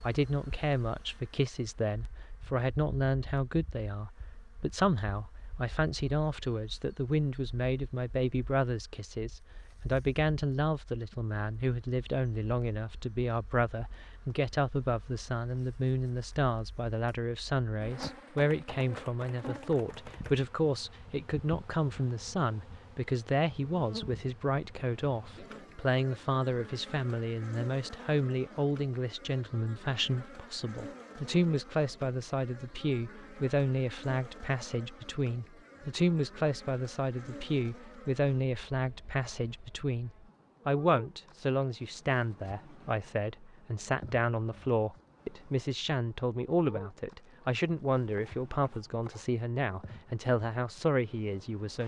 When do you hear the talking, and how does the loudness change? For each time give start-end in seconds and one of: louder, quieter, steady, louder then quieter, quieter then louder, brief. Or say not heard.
0.0-51.8 steady.